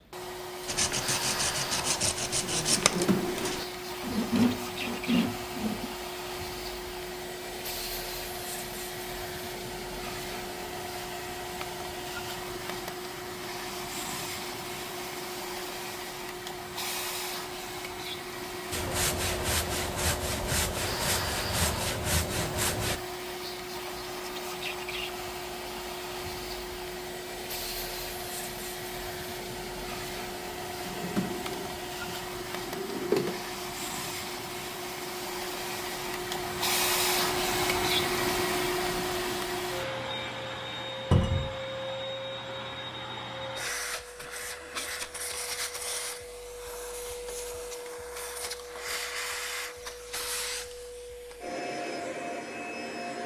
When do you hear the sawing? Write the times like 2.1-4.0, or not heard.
0.7-5.9, 18.7-23.0.